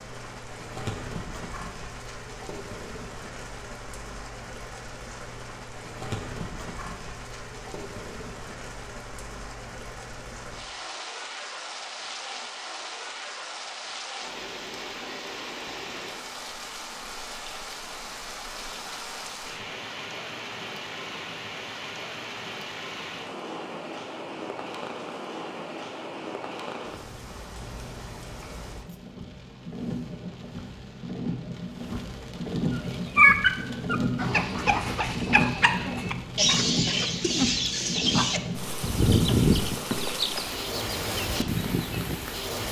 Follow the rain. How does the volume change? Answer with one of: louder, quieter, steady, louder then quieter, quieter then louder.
louder.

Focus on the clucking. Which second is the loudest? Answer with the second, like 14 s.
33 s.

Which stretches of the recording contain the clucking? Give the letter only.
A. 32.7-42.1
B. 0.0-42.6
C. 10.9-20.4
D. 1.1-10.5
A.